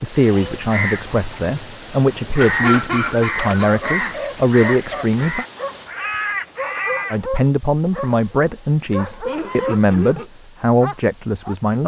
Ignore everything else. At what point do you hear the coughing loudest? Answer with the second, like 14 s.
3 s.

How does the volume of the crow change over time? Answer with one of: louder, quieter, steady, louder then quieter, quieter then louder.
louder.